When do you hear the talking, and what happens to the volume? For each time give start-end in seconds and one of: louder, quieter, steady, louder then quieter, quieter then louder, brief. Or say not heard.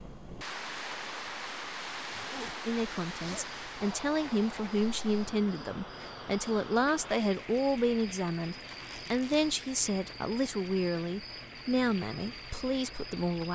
2.6-13.5 steady.